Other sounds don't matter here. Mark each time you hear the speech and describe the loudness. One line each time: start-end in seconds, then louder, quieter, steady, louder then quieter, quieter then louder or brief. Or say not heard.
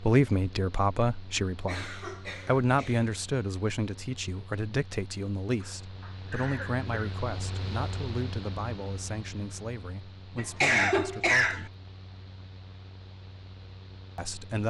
0.0-11.8 quieter
14.2-14.6 brief.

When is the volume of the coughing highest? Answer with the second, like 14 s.
11 s.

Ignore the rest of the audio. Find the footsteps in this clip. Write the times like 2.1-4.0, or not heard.
not heard.